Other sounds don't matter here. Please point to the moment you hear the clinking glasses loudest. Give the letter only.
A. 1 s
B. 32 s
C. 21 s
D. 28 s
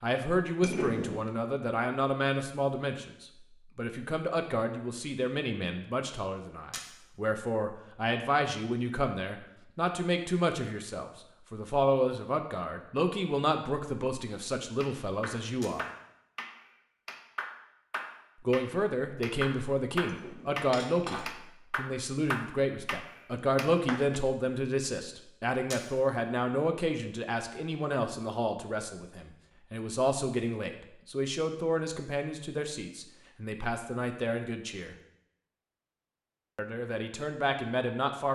A.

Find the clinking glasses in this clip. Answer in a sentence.
The clinking glasses can be heard from 0.6 to 1.3 s and from 20.1 to 21.3 s.